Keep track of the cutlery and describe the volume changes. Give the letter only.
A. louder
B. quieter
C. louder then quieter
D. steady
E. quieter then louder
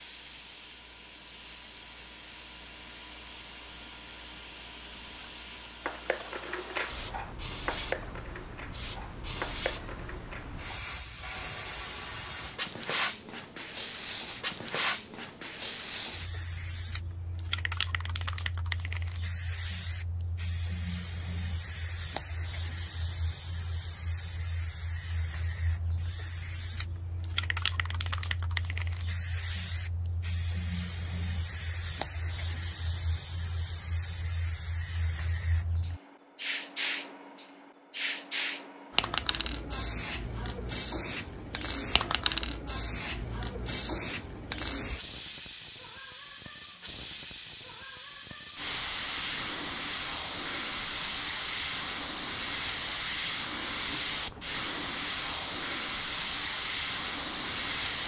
E.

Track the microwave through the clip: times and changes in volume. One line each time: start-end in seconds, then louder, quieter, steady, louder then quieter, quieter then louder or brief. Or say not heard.
not heard.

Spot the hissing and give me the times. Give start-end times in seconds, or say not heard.
0.0-58.0.